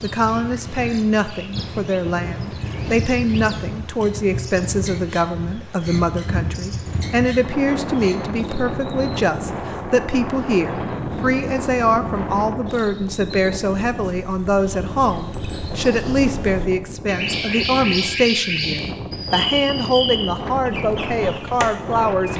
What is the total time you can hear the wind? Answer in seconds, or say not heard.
22 s.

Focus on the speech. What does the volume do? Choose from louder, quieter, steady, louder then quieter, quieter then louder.
steady.